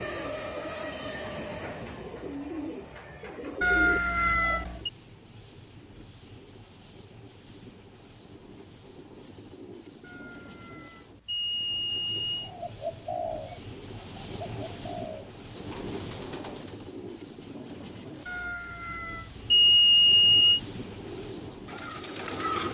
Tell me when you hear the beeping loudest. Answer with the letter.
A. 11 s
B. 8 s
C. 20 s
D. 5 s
C.